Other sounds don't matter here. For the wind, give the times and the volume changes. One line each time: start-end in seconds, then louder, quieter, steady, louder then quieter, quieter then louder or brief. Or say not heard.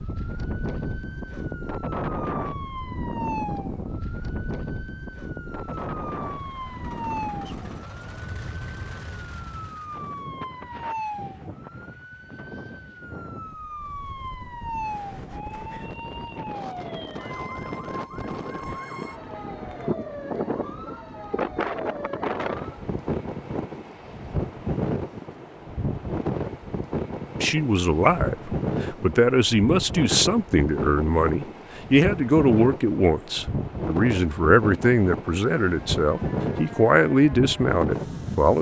0.0-38.5 quieter then louder.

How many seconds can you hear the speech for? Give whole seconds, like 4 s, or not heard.
11 s.